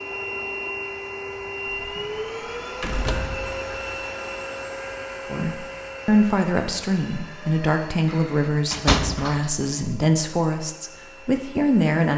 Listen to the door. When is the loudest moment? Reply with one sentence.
The loudest moment of the door is at 9 seconds.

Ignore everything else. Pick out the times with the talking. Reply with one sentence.
The talking can be heard from 5.3 to 12.1 s.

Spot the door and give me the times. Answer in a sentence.
You can hear the door from 1.9 to 3.9 s and from 8.1 to 9.4 s.